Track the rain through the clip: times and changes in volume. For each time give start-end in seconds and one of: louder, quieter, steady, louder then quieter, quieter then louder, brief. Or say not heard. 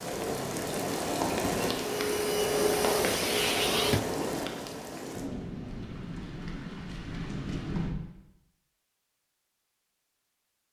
0.0-8.0 quieter.